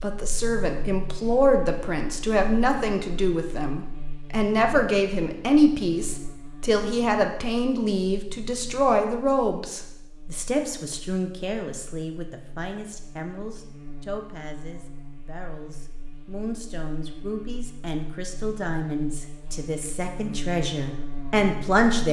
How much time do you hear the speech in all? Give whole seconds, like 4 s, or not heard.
22 s.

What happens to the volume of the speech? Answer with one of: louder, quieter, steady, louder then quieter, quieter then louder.
quieter then louder.